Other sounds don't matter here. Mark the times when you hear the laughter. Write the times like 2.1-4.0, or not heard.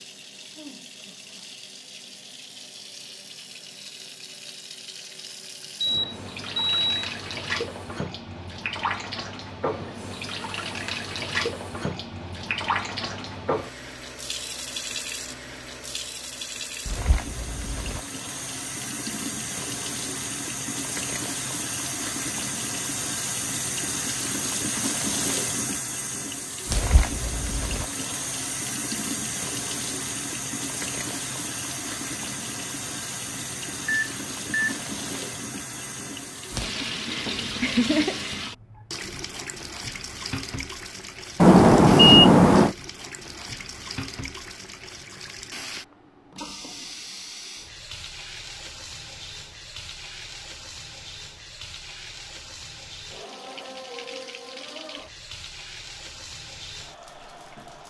37.0-38.4.